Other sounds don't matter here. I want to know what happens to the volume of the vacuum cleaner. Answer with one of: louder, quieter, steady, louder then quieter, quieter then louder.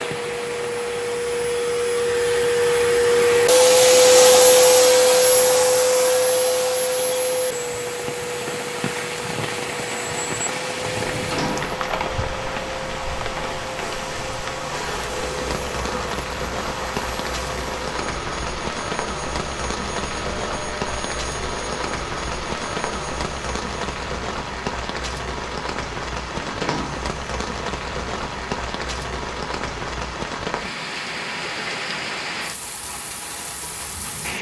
quieter.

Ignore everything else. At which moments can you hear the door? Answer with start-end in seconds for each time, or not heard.
11.0-11.8, 26.4-27.1.